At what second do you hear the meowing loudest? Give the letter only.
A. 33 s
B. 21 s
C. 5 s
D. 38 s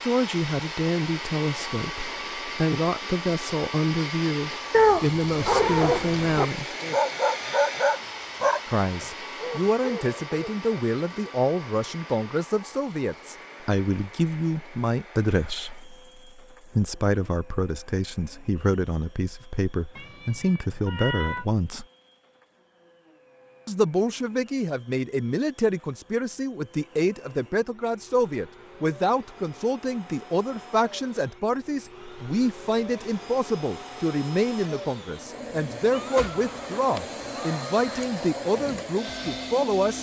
C.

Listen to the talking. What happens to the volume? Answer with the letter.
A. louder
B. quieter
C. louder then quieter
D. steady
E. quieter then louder
D.